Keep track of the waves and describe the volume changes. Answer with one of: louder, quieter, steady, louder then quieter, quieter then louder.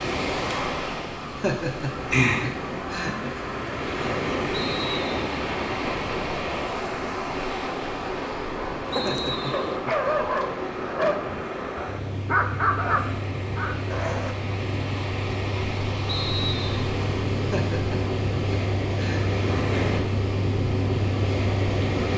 quieter then louder.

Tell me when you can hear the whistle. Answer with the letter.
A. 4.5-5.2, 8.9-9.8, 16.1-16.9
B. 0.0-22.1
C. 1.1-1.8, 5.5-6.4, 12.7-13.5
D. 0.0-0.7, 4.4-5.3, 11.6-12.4
A.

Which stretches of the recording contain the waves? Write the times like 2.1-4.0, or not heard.
0.0-22.1.